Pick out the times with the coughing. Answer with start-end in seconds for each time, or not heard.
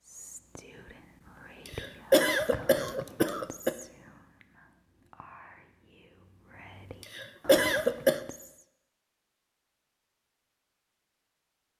1.6-3.8, 7.2-8.2.